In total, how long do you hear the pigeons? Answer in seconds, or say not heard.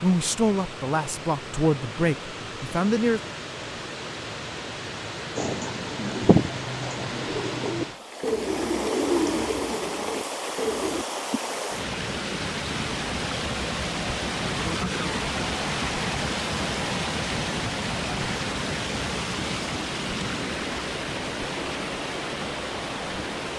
6 s.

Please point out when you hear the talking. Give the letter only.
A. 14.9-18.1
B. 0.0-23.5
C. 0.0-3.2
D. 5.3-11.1
C.